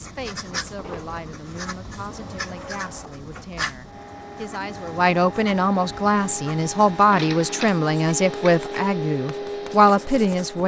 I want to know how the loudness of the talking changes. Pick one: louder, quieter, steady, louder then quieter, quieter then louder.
louder.